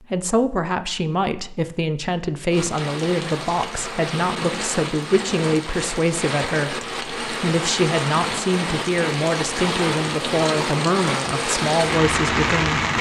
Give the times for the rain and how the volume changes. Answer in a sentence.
You can hear the rain from 2.5 to 12.9 s, getting louder.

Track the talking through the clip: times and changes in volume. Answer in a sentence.
You can hear the talking from 0.1 to 12.8 s, at a steady volume.